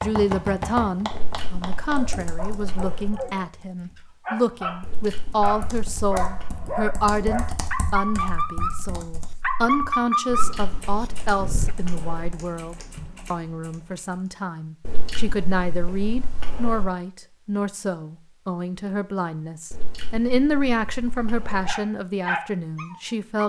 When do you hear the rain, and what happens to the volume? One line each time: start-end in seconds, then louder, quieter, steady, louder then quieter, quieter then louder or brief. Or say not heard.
not heard.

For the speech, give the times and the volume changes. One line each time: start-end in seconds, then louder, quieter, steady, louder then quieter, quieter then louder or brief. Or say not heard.
0.0-23.4 steady.